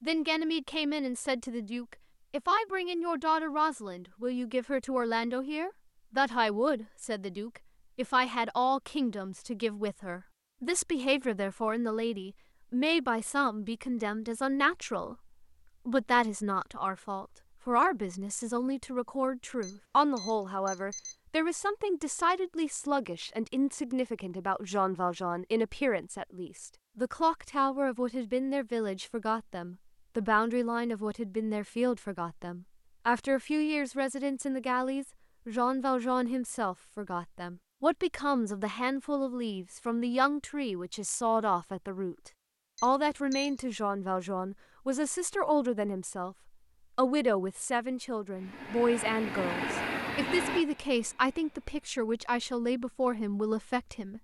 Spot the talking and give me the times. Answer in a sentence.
You can hear the talking from 0.0 to 15.2 s, from 15.8 to 46.4 s and from 47.0 to 54.2 s.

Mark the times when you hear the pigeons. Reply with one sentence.
The pigeons can't be heard in this clip.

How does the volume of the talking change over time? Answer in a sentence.
The loudness of the talking stays about the same.